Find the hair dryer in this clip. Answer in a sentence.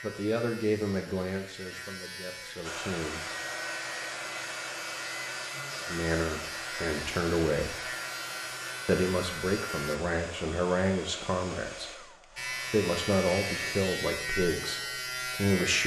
You can hear the hair dryer from 2.6 to 13.8 s.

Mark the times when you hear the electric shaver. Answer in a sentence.
The electric shaver can be heard from 0.0 to 10.0 s and from 12.3 to 15.8 s.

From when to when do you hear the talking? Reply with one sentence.
The talking can be heard from 0.0 to 3.2 s, from 5.8 to 7.8 s and from 8.8 to 15.8 s.